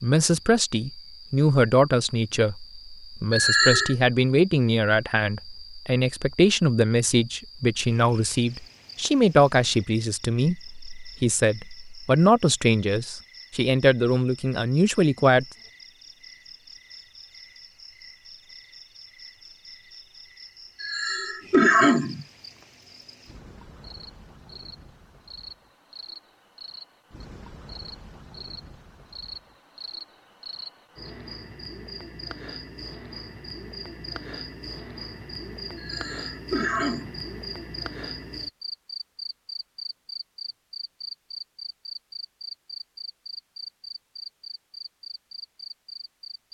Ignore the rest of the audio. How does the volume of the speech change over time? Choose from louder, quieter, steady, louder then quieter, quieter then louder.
steady.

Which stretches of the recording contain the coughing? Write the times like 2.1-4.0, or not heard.
3.3-4.0, 20.8-22.2, 35.8-37.2.